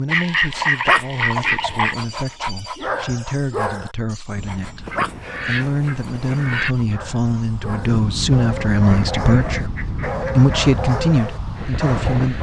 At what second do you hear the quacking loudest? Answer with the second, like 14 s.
1 s.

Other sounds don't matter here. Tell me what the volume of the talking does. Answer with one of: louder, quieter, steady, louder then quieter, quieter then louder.
louder.